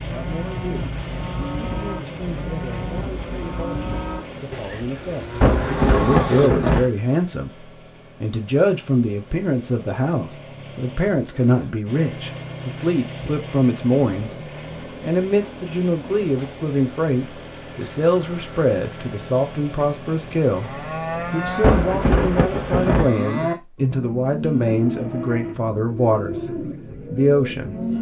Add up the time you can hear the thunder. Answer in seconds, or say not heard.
3 s.